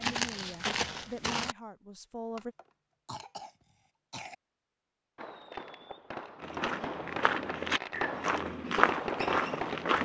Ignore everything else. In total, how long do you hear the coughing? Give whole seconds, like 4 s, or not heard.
2 s.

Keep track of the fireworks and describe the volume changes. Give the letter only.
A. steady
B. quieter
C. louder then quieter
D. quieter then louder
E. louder
E.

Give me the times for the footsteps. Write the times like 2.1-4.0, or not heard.
0.0-1.6, 6.3-10.0.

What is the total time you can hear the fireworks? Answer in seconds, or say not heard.
5 s.